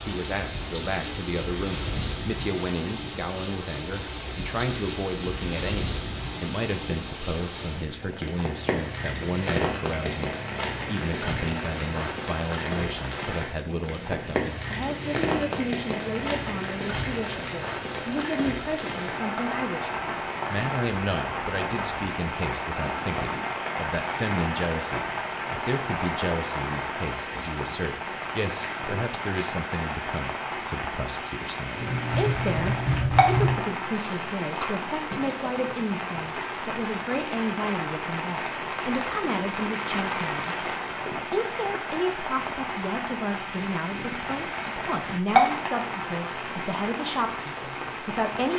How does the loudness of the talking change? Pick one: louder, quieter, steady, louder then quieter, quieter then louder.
steady.